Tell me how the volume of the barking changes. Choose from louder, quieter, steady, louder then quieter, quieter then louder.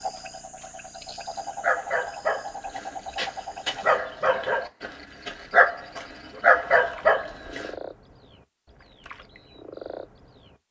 louder.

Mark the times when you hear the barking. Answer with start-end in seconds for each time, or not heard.
1.6-7.7.